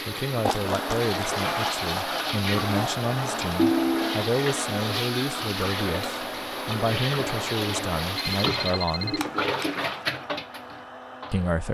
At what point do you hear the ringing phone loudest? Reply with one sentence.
The volume of the ringing phone peaks at 4 seconds.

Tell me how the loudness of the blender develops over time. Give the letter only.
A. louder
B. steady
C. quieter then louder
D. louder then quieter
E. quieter
E.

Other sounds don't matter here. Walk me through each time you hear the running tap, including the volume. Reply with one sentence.
You can hear the running tap from 0.0 to 11.4 s, at a steady volume.